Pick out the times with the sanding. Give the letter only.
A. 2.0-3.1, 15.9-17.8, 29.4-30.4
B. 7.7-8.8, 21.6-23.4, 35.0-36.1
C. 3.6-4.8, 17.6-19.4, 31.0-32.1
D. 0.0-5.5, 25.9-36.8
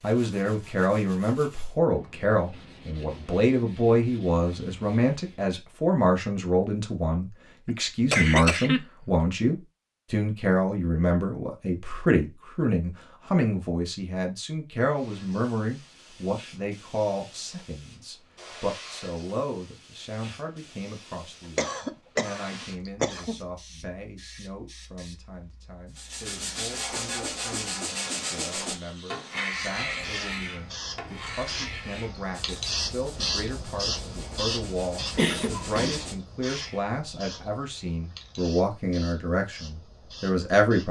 D.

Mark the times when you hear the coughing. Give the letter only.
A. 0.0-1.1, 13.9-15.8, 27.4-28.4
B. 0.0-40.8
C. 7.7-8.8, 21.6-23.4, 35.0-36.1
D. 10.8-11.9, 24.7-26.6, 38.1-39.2
C.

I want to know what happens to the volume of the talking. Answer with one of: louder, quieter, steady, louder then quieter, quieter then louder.
quieter then louder.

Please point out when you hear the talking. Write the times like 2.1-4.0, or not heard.
0.0-40.8.